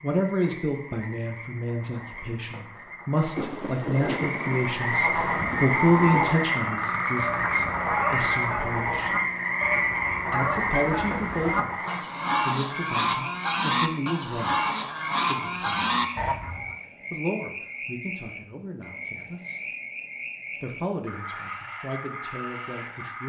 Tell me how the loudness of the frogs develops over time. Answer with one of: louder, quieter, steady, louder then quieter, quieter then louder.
louder then quieter.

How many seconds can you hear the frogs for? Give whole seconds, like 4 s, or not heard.
23 s.